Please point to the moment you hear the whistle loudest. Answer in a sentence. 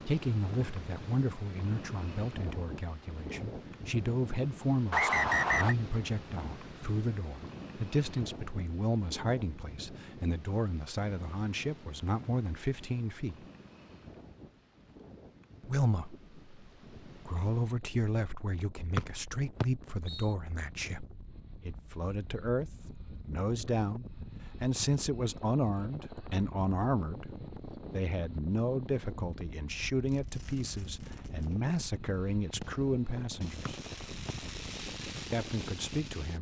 The volume of the whistle peaks at 5 seconds.